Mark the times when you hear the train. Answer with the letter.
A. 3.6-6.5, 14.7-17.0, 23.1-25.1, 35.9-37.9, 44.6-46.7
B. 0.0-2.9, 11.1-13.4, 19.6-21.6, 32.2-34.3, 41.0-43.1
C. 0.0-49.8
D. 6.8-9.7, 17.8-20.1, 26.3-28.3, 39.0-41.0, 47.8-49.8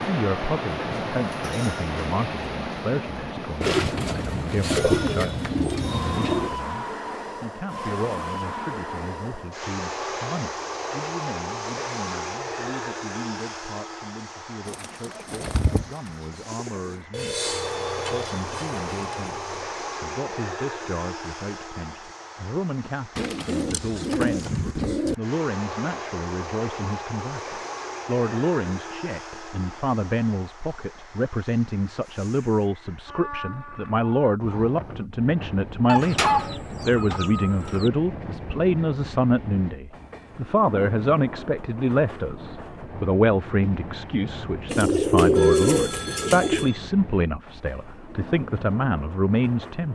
C.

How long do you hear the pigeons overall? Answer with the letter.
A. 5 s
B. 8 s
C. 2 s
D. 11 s
D.